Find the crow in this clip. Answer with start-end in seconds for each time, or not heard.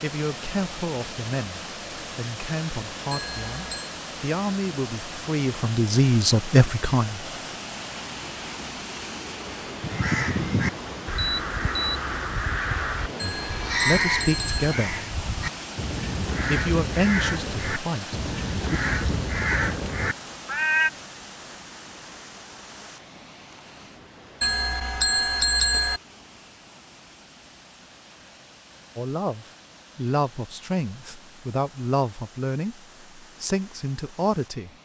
9.8-20.9.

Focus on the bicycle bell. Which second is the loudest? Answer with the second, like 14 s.
26 s.